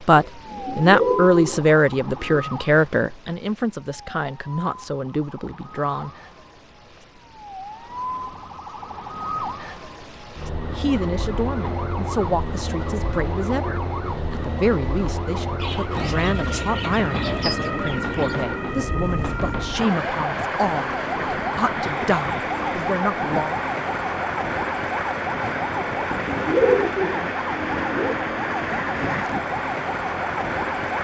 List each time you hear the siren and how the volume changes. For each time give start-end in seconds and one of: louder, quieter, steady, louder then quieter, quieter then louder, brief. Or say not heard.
0.0-30.9 louder.